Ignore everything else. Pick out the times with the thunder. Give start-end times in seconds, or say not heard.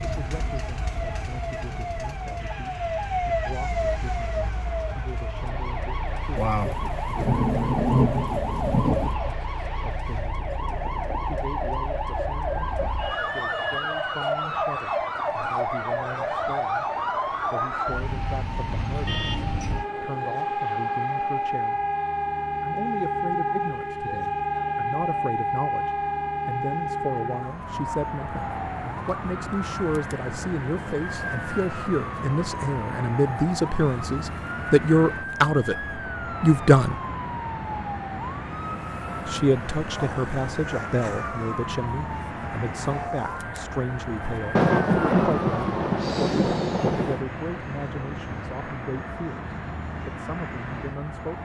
6.3-9.2, 44.5-47.2.